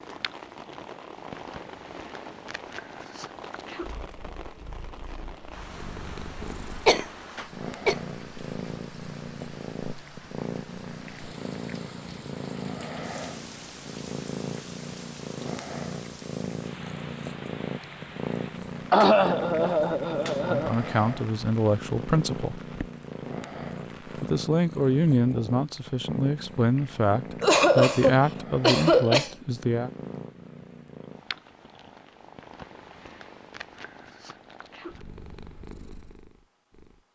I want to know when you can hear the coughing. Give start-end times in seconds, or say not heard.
6.4-8.0, 18.9-20.7, 27.4-29.3.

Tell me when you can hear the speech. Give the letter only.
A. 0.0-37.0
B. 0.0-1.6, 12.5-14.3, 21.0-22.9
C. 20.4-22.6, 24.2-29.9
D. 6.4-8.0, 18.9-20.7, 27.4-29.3
C.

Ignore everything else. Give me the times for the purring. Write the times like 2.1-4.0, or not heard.
0.0-37.0.